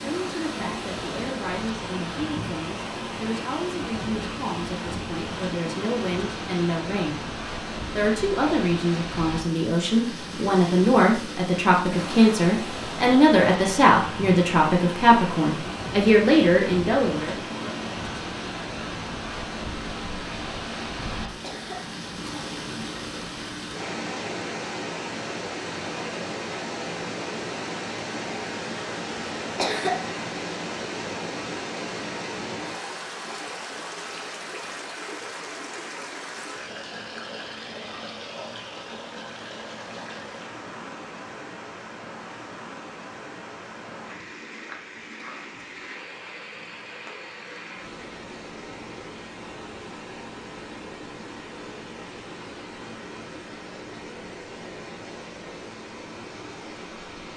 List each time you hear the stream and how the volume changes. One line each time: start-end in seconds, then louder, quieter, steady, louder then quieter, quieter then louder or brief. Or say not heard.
0.0-57.3 quieter.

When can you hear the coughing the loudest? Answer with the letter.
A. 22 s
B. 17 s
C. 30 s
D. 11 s
C.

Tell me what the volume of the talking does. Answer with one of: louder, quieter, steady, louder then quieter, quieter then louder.
louder.